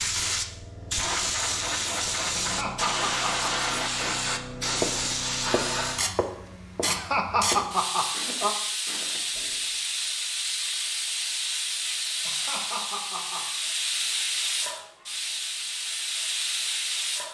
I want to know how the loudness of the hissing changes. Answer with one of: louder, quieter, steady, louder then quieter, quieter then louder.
steady.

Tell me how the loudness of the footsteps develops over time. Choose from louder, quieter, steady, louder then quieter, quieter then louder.
quieter.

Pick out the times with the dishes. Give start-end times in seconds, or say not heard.
not heard.